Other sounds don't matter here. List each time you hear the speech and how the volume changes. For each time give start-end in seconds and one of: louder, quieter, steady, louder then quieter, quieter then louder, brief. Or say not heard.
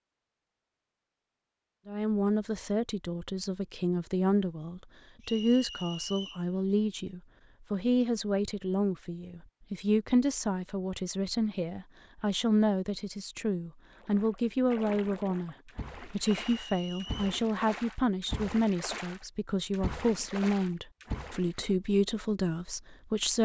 1.9-23.4 steady.